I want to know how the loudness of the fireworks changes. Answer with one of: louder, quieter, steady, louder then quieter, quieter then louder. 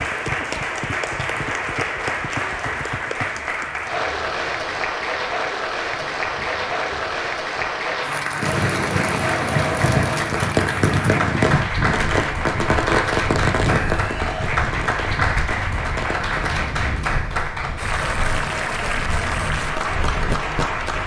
quieter.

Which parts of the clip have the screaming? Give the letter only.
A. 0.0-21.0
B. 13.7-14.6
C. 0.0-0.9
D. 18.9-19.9
B.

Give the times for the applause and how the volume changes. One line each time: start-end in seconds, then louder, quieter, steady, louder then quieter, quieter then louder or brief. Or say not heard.
0.0-21.0 steady.